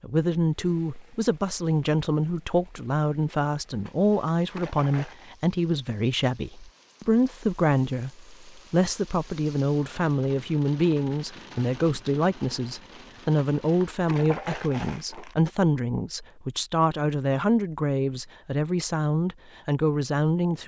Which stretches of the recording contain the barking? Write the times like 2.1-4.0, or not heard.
not heard.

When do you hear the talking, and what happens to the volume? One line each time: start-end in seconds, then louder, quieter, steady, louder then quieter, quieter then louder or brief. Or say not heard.
0.0-20.6 steady.